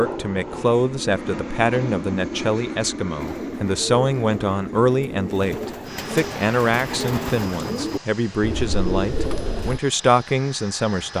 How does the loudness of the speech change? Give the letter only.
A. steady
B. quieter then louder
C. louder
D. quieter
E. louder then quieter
A.